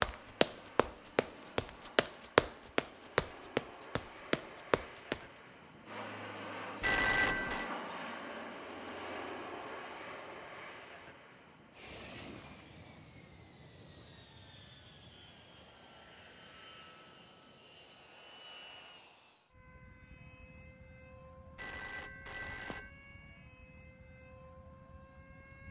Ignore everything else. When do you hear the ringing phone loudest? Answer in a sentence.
The loudest moment of the ringing phone is at 7 seconds.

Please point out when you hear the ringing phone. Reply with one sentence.
The ringing phone can be heard from 6.8 to 7.7 s and from 21.6 to 22.9 s.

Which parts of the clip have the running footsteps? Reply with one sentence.
You can hear the running footsteps from 0.0 to 5.2 s.